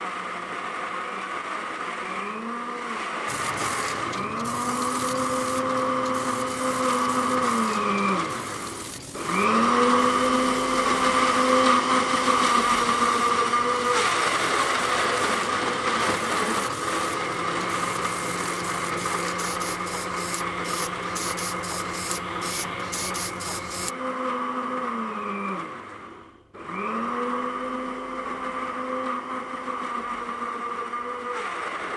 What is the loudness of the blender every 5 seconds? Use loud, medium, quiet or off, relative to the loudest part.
medium, loud, loud, medium, medium, medium, medium.